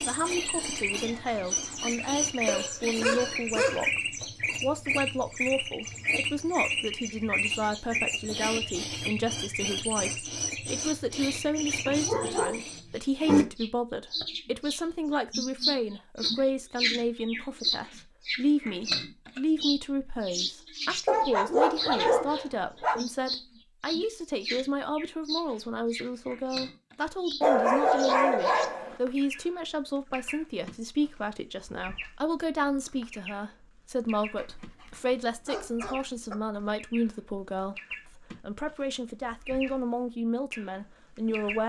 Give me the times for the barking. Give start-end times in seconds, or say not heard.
2.5-3.9, 11.8-13.4, 21.1-23.0, 27.4-28.9, 34.4-36.4.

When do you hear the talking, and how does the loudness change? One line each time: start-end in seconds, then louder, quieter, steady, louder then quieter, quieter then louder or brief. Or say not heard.
0.0-41.6 steady.